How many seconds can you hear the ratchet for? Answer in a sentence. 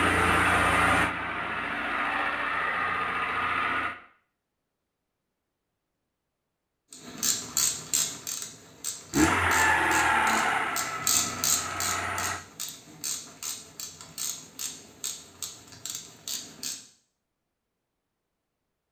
You can hear the ratchet for 10 seconds altogether.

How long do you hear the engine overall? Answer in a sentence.
You can hear the engine for 7 seconds altogether.